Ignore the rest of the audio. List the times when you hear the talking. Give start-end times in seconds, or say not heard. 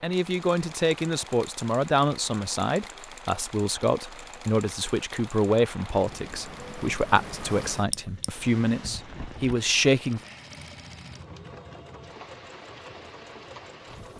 0.0-10.2.